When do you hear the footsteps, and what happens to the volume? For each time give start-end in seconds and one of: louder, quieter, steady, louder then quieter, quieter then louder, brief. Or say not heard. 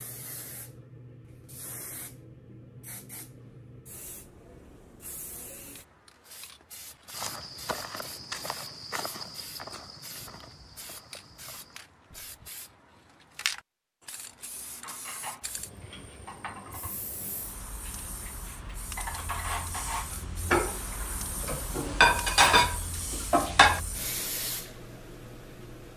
7.1-12.5 quieter.